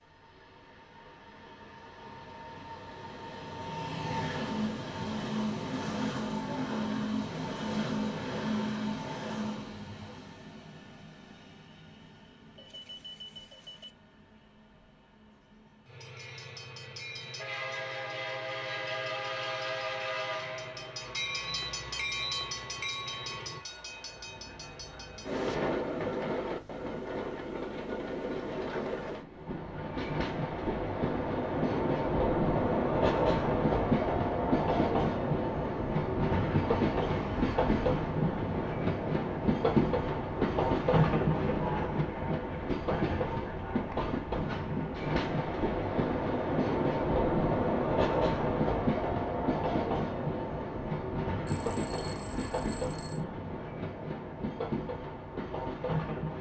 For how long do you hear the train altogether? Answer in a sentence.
You can hear the train for 56 seconds altogether.